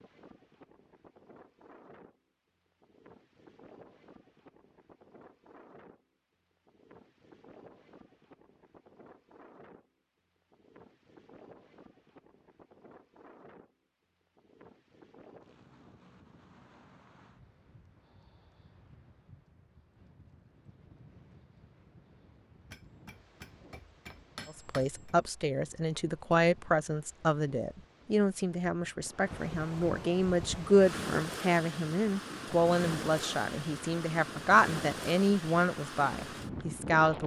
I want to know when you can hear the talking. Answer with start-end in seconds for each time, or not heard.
24.4-37.2.